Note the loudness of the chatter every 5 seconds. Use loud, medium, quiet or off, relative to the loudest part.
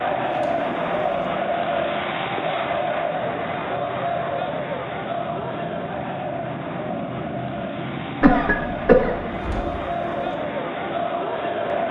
loud, medium, loud.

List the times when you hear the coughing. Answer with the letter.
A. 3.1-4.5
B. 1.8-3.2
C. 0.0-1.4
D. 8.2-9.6
D.